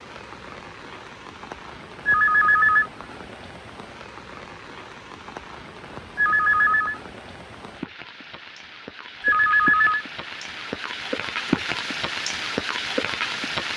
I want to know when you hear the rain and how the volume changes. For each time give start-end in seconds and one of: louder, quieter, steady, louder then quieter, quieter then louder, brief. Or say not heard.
0.0-13.7 louder.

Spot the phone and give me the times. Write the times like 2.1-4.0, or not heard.
2.0-2.9, 6.2-7.0, 9.2-10.1.